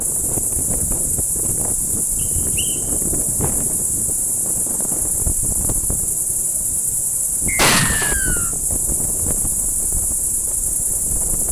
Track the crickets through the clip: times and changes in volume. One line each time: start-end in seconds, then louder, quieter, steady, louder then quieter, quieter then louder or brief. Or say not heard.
0.0-11.4 steady.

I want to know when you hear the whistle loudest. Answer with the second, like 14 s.
8 s.